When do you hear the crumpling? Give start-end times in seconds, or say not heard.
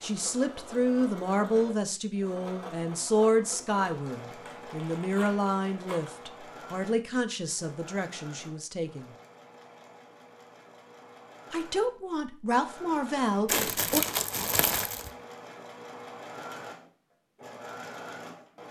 4.5-6.2, 13.4-15.1.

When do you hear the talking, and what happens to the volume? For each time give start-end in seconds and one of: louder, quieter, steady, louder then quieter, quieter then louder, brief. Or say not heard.
0.0-9.2 quieter
11.5-14.1 brief.